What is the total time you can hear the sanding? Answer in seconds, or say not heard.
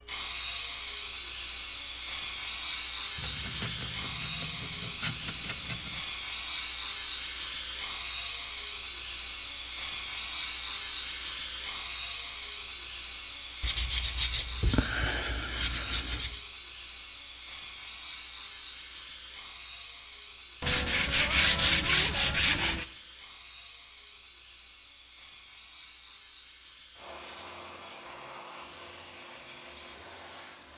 8 s.